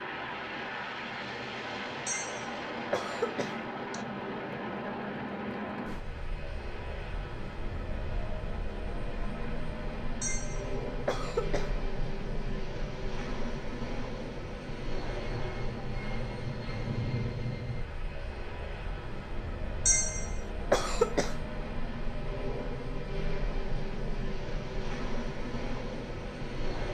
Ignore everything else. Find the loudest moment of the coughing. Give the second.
21 s.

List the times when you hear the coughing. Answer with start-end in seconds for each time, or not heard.
2.0-4.0, 10.2-11.7, 19.9-21.4.